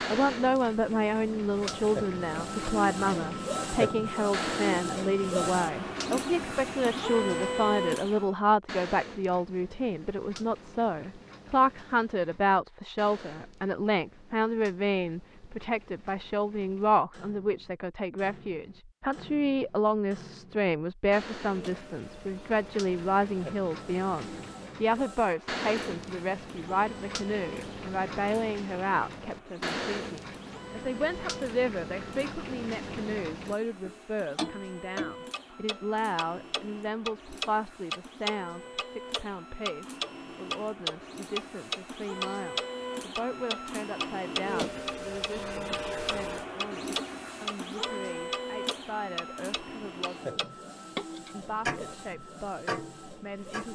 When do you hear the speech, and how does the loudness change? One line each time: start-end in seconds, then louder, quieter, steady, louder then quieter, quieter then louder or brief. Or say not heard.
0.1-50.5 quieter
51.3-53.6 brief.